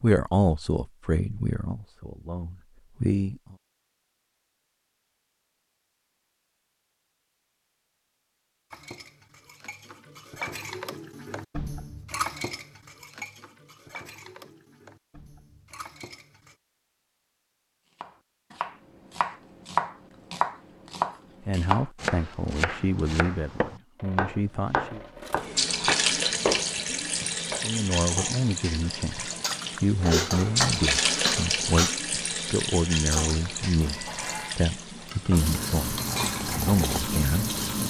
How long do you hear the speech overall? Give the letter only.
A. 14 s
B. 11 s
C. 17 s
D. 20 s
C.